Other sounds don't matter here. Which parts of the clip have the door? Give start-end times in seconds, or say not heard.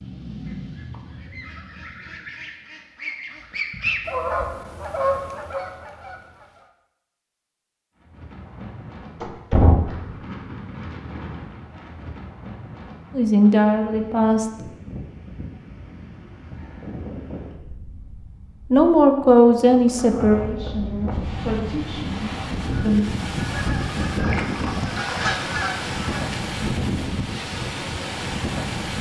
9.2-10.1.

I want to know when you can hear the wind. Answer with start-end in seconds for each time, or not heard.
8.0-28.9.